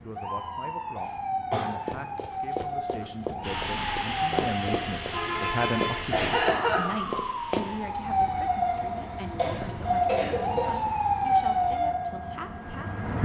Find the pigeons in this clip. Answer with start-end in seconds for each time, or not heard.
not heard.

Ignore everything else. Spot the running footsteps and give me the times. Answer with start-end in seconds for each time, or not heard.
1.9-7.7.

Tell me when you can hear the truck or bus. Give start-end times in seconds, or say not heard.
3.4-11.8.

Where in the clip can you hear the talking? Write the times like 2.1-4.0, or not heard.
0.0-13.2.